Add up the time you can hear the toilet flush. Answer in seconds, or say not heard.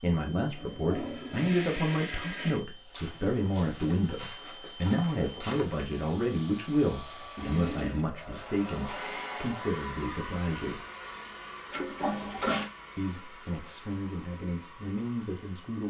4 s.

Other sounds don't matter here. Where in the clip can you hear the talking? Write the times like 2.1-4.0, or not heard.
0.0-10.8, 12.9-15.8.